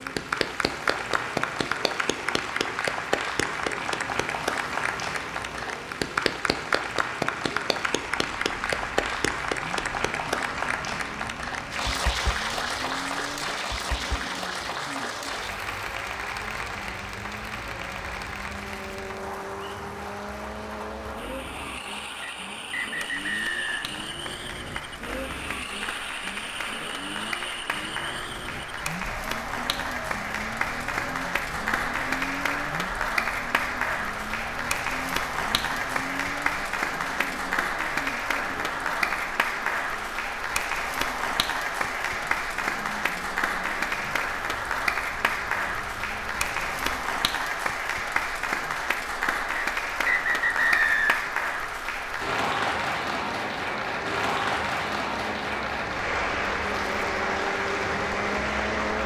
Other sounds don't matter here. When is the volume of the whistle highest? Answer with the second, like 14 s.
51 s.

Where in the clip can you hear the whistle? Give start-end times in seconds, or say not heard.
22.2-23.9, 49.5-51.4.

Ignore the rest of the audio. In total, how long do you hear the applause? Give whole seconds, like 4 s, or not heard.
59 s.